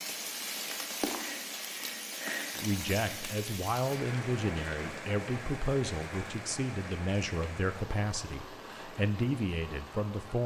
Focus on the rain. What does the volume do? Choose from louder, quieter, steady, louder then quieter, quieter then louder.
quieter.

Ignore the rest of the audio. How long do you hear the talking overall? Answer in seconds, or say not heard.
8 s.